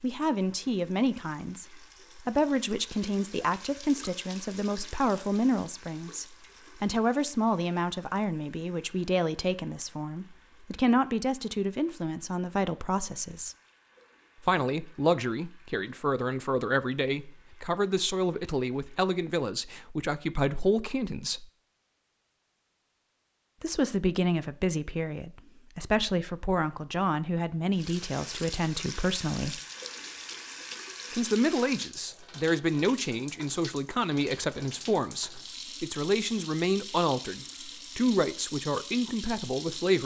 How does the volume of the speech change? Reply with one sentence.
The volume of the speech stays about the same.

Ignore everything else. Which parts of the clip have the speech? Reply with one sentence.
The speech can be heard from 0.0 to 13.6 s, from 14.4 to 21.4 s, from 23.6 to 29.6 s and from 31.1 to 40.0 s.